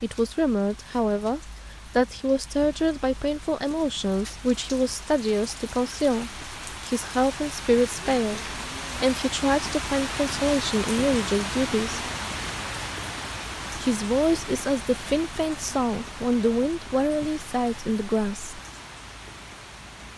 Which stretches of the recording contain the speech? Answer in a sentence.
The speech can be heard from 0.0 to 12.1 s and from 13.8 to 18.6 s.